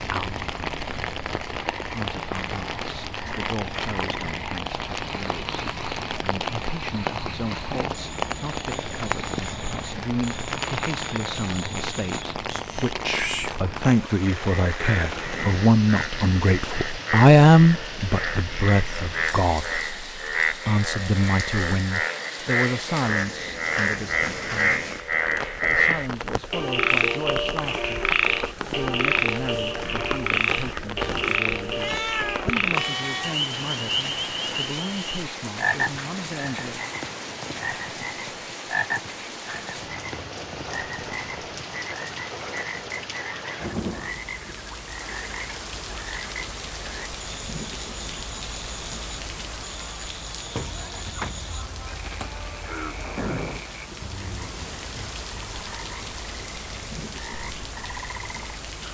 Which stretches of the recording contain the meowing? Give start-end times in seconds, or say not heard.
31.8-33.5.